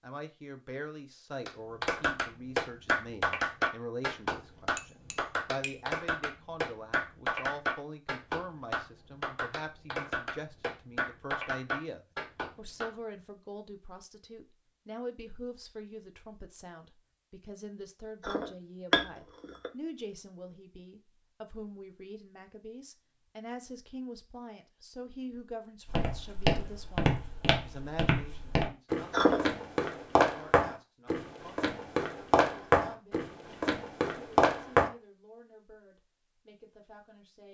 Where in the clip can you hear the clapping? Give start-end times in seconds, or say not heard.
1.4-12.9.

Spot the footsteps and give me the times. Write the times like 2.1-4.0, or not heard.
25.9-34.9.